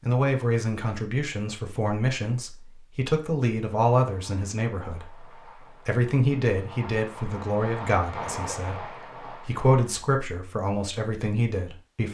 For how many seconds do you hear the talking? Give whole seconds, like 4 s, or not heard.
12 s.